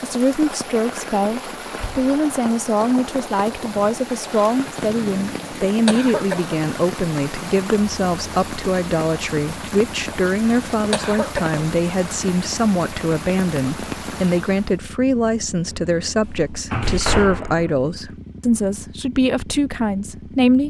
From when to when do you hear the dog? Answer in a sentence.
The dog can't be heard in this clip.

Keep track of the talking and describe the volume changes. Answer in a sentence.
The loudness of the talking stays about the same.